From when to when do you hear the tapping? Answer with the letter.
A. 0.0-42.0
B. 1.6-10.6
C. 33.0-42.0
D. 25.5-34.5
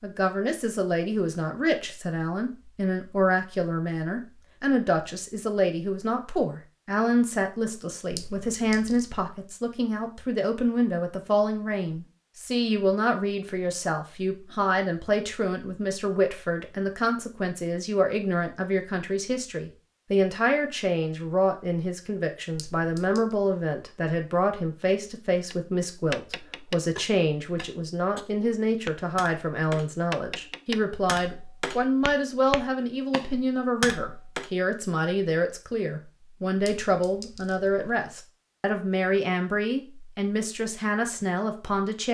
D.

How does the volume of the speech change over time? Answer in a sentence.
The volume of the speech stays about the same.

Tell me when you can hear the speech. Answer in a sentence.
You can hear the speech from 0.0 to 42.0 s.